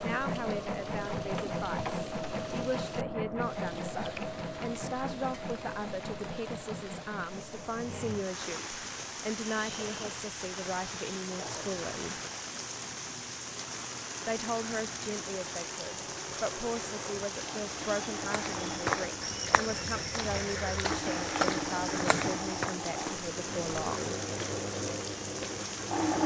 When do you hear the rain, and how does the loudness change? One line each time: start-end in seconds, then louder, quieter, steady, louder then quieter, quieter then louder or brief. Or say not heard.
0.0-26.2 louder.